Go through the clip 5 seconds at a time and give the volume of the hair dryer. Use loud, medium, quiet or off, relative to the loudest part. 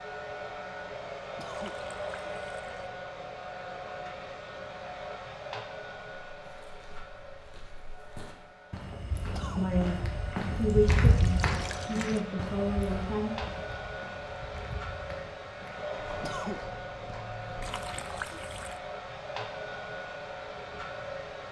loud, medium, loud, loud, loud.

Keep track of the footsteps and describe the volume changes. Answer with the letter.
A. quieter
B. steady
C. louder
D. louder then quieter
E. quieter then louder
D.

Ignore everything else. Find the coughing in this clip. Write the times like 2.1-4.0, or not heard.
1.4-1.8, 9.3-9.8, 16.2-16.6.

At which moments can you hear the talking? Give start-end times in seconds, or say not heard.
9.6-13.3.